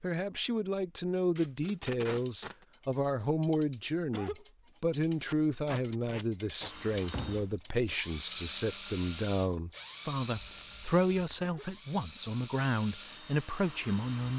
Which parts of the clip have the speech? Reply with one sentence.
The speech can be heard from 0.0 to 14.3 s.